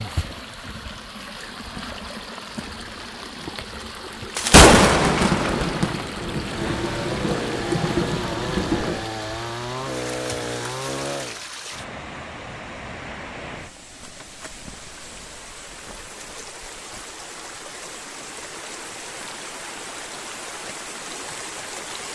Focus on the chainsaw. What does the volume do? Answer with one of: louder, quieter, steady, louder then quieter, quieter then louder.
steady.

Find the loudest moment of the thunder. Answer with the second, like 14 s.
5 s.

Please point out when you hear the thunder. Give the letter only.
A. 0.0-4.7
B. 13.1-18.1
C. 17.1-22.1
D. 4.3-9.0
D.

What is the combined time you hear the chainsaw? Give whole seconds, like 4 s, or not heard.
5 s.